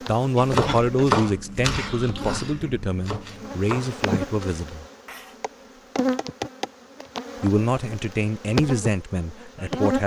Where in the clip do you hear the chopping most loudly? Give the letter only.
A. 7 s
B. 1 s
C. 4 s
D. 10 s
B.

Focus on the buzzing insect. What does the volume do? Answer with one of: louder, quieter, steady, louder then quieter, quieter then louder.
louder.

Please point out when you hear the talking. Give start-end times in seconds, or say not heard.
0.1-4.8, 7.4-10.0.